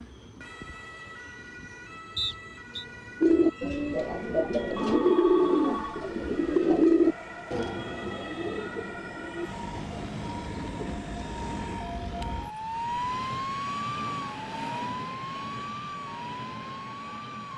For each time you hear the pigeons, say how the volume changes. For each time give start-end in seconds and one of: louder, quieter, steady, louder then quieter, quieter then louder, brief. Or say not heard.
3.2-11.0 louder then quieter.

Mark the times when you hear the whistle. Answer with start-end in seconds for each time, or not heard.
2.1-2.9.